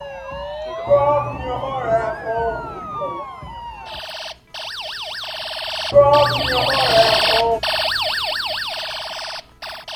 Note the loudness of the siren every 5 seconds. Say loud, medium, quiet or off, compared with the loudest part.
medium, loud.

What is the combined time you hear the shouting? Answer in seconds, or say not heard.
4 s.